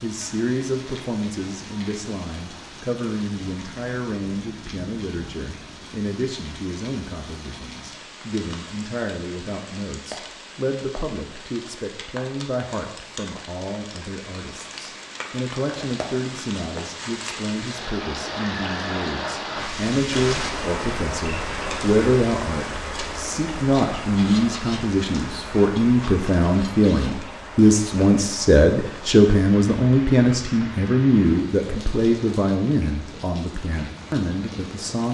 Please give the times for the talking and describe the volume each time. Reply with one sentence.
The talking can be heard from 0.0 to 35.0 s, getting louder.